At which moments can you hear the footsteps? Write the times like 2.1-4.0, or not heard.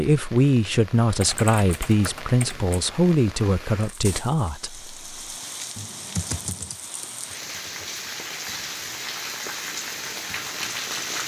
not heard.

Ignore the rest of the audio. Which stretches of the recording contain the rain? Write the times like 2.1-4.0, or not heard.
0.0-11.2.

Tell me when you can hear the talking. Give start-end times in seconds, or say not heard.
0.0-4.9.